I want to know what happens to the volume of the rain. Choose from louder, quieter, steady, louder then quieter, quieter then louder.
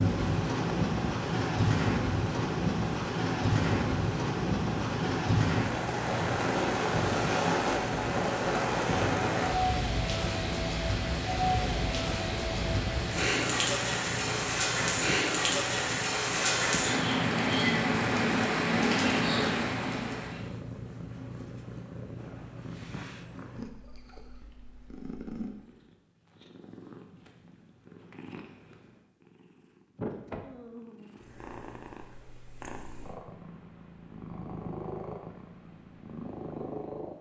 steady.